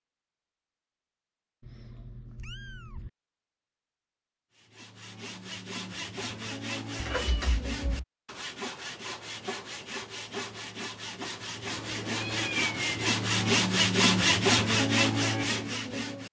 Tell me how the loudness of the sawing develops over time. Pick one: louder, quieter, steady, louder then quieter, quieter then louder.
louder.